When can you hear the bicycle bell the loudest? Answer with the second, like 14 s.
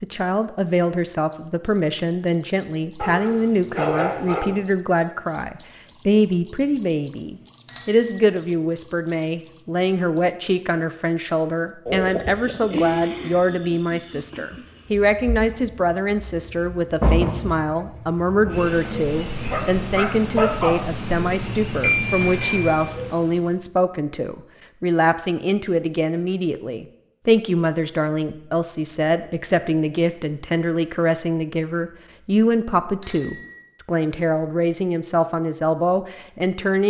22 s.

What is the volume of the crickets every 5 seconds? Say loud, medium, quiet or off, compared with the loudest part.
loud, loud, medium, medium, medium, off, off, off.